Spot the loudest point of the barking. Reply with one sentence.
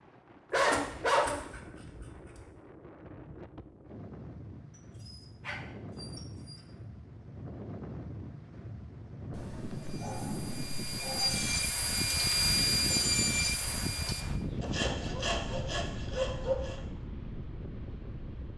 The loudest moment of the barking is at 1 second.